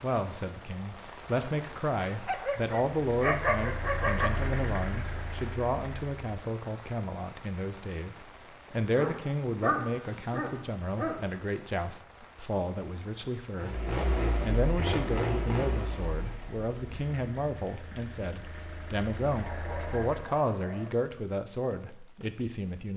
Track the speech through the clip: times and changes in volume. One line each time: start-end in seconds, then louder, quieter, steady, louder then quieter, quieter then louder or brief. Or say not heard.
0.0-22.9 steady.